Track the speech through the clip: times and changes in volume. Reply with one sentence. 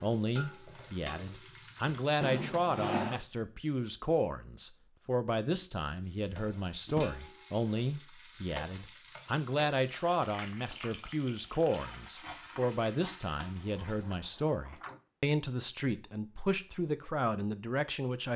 You can hear the speech from 0.0 to 18.3 s, at a steady volume.